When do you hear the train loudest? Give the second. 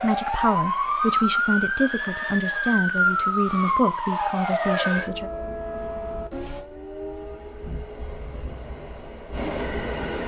10 s.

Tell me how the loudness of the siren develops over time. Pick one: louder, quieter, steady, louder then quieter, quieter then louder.
quieter.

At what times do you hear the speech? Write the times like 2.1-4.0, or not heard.
0.0-5.3.